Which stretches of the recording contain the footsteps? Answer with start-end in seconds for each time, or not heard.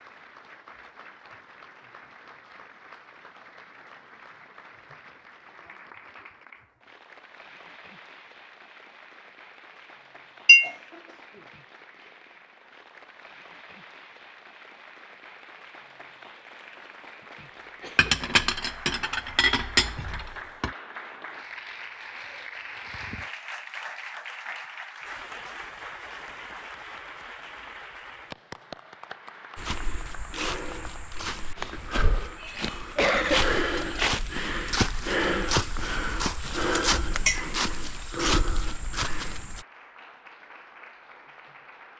29.6-39.6.